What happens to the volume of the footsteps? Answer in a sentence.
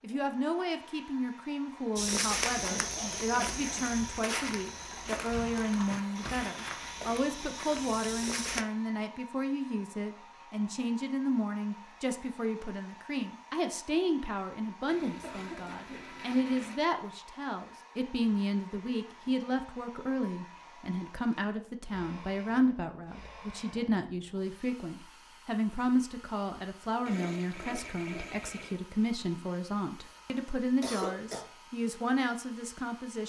The loudness of the footsteps goes down.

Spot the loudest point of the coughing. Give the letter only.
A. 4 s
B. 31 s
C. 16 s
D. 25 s
B.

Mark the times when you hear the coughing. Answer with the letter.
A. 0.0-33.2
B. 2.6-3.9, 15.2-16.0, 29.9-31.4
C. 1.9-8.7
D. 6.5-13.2
B.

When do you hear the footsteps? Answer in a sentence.
You can hear the footsteps from 1.9 to 8.7 s.